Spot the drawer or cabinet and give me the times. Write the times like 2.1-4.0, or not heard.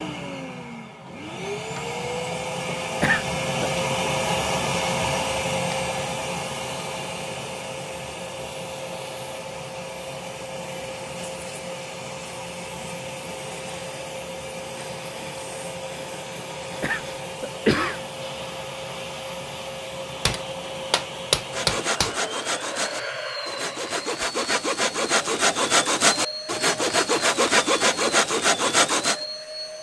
not heard.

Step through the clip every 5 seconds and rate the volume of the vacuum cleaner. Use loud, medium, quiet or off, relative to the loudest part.
loud, loud, medium, medium, medium, medium.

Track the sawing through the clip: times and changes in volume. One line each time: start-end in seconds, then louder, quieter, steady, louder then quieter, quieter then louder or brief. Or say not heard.
21.4-29.2 louder.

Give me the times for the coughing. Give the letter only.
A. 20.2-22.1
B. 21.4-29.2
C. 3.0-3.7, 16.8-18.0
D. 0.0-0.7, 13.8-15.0
C.